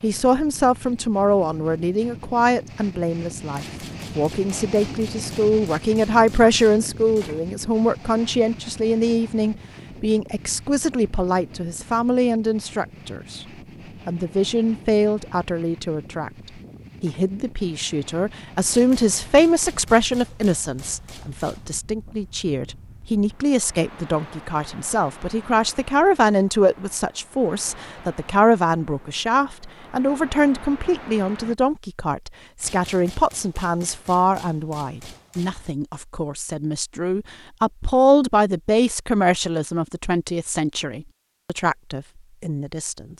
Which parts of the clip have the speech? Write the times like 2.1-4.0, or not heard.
0.0-13.4, 14.1-16.3, 17.0-43.1.